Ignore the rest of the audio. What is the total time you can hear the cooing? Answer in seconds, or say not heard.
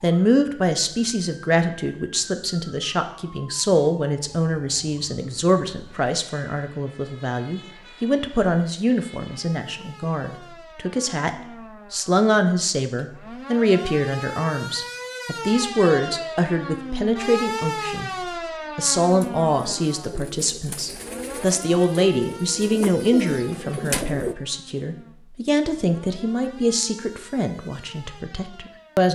5 s.